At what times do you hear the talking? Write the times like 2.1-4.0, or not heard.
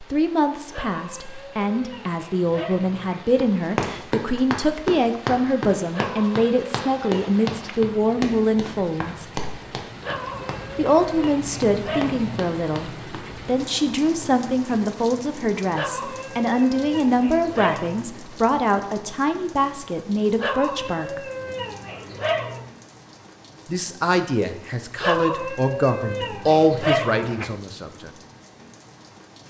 0.0-9.2, 10.8-21.2, 23.6-28.1.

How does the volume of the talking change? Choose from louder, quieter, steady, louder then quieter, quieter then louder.
steady.